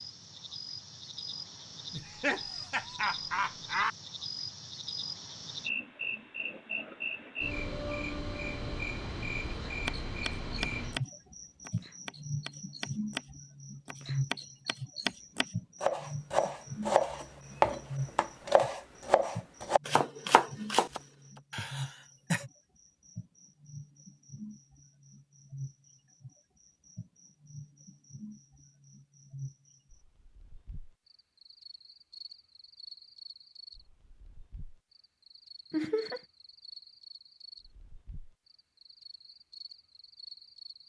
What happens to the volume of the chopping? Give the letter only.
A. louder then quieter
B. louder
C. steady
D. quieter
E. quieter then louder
B.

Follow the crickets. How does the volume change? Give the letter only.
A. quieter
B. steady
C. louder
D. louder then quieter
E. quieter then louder
A.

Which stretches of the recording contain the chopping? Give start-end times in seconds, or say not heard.
9.7-21.0.